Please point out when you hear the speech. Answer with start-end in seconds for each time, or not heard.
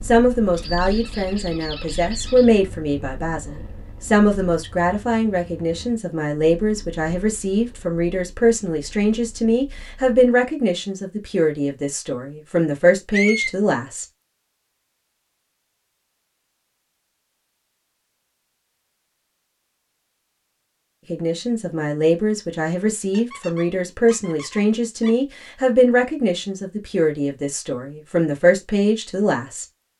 0.0-14.1, 21.1-29.6.